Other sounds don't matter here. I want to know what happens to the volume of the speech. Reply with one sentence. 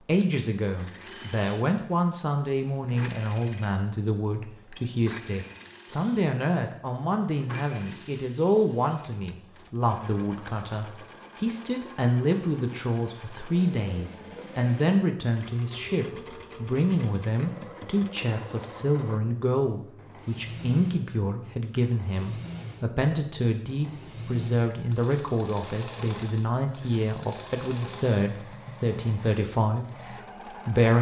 The loudness of the speech stays about the same.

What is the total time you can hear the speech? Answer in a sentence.
You can hear the speech for 31 seconds altogether.